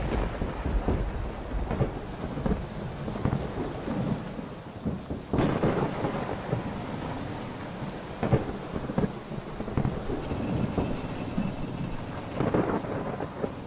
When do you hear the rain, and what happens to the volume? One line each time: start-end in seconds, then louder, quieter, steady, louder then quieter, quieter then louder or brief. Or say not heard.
0.0-13.6 steady.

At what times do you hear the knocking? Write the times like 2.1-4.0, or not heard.
0.4-1.2, 4.8-5.5, 10.3-11.0.